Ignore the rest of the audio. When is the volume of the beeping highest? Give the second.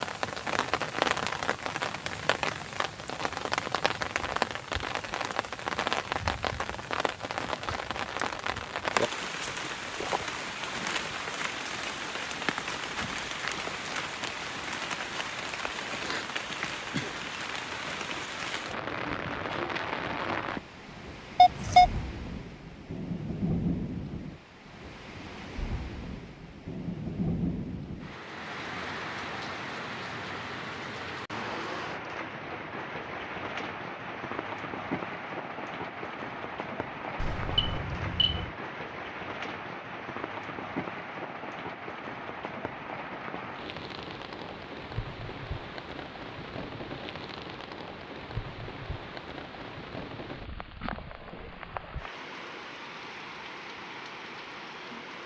22 s.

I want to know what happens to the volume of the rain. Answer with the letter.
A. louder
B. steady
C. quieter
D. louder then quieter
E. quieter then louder
C.